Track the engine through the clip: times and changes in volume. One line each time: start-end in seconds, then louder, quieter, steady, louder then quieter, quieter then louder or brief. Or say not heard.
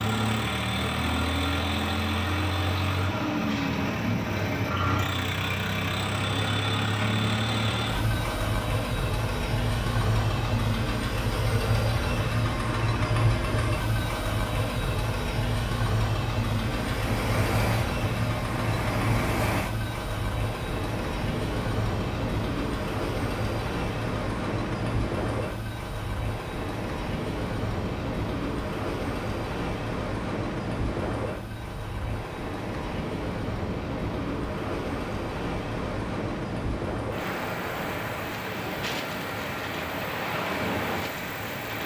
0.0-41.8 quieter.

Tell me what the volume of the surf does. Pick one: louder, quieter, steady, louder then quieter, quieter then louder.
steady.